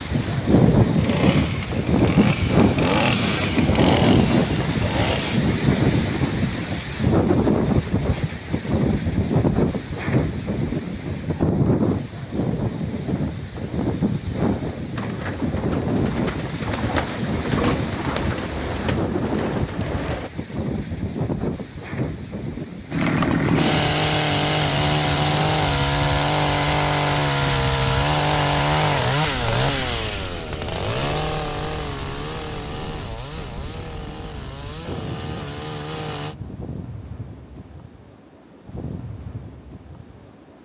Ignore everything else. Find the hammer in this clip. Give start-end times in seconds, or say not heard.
not heard.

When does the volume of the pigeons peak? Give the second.
18 s.